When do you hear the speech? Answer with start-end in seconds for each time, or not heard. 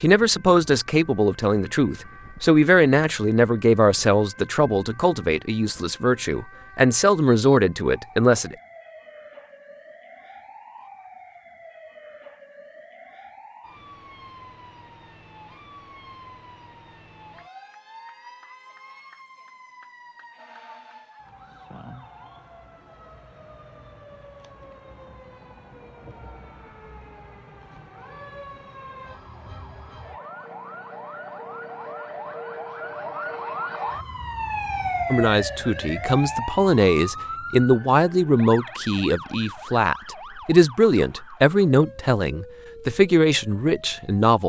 0.0-8.6, 35.1-44.4.